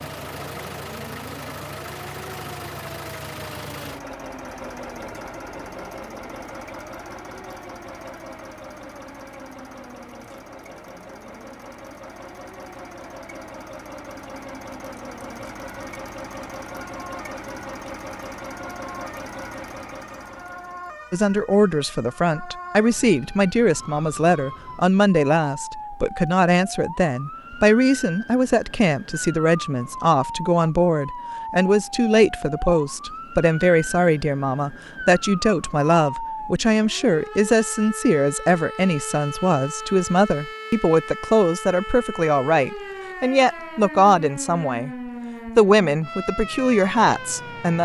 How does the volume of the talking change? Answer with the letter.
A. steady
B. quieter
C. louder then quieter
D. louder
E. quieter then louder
A.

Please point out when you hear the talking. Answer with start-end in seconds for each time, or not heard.
21.1-47.8.